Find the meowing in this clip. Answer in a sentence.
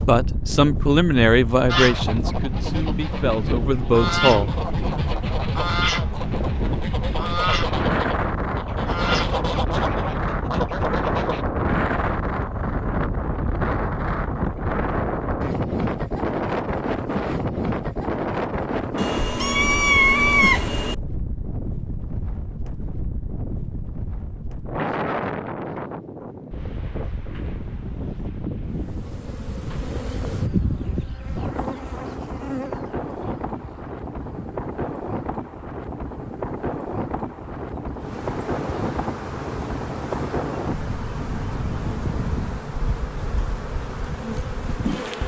You can hear the meowing from 18.9 to 20.9 s.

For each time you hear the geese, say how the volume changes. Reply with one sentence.
The geese can be heard from 1.6 to 11.4 s, getting louder.